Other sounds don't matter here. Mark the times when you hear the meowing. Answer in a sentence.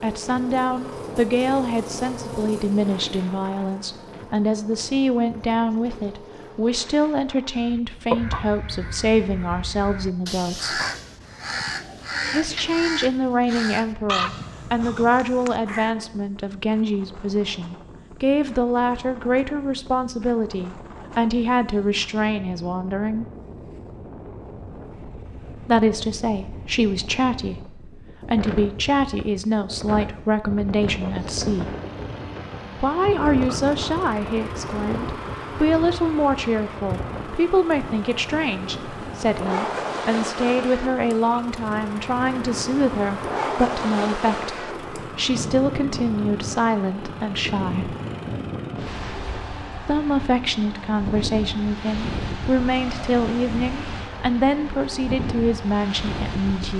The meowing can't be heard in this clip.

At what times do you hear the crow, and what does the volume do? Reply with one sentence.
The crow can be heard from 7.5 to 15.9 s, at a steady volume.